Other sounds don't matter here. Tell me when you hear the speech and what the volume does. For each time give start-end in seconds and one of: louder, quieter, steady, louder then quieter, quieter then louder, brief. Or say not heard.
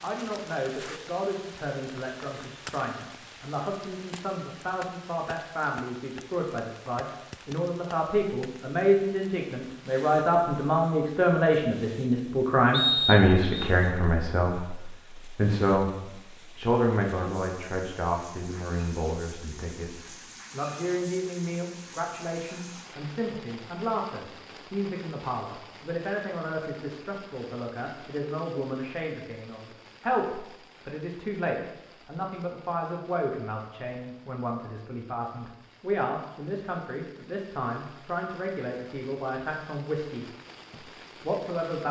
0.0-41.8 louder then quieter.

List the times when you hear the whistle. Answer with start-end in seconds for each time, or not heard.
12.7-13.7.